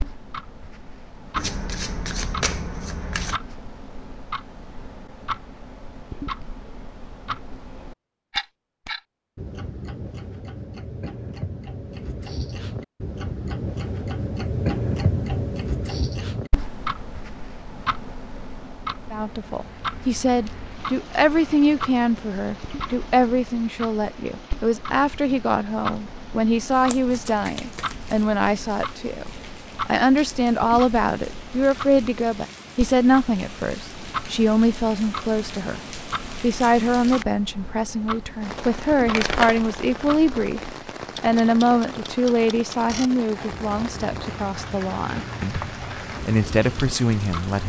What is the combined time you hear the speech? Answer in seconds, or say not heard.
27 s.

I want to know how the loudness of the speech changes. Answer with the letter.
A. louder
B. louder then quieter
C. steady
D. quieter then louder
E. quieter
C.